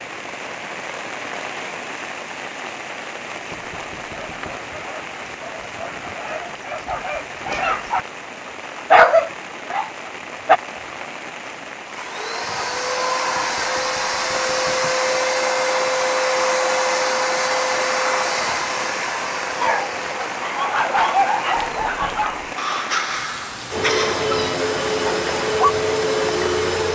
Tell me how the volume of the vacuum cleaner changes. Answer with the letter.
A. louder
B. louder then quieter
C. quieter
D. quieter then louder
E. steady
D.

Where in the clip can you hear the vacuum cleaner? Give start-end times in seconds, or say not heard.
11.8-26.9.